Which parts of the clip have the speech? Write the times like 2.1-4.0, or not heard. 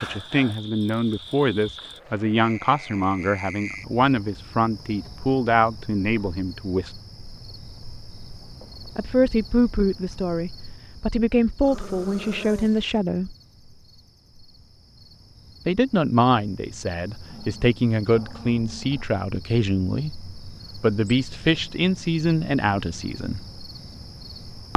0.0-7.0, 8.9-13.3, 15.7-23.4.